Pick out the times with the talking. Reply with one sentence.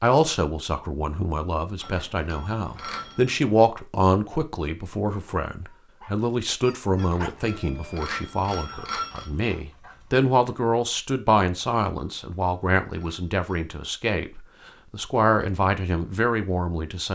The talking can be heard from 0.0 to 17.1 s.